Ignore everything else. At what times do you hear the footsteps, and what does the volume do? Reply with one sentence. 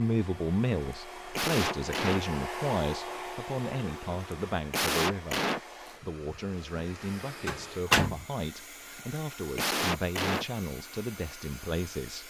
You can't hear the footsteps here.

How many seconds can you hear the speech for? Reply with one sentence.
You can hear the speech for 12 seconds altogether.